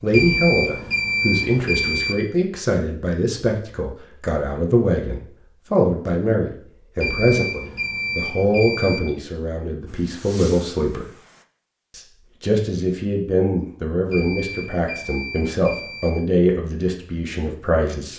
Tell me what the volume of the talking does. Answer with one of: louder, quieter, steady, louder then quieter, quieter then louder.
steady.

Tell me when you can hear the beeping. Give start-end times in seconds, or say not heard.
0.1-2.1, 7.0-9.0, 14.1-16.1.